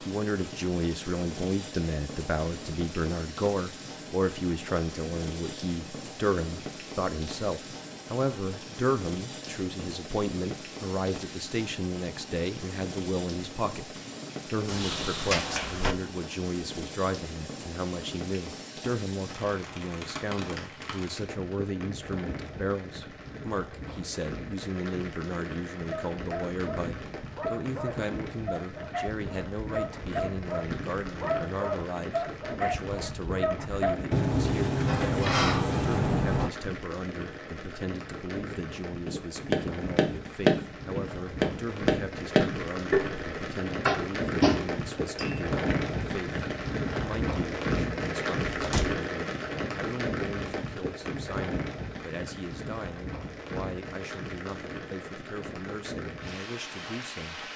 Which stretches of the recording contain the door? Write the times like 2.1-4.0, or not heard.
14.7-15.9, 34.1-36.5, 48.5-49.0.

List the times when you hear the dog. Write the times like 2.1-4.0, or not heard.
25.8-34.0.